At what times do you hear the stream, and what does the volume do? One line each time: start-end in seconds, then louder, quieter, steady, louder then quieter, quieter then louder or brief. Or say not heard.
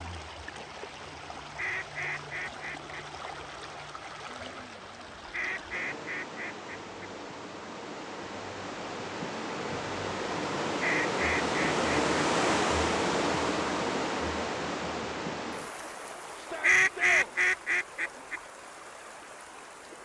0.0-20.0 louder then quieter.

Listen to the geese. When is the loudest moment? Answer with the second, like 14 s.
17 s.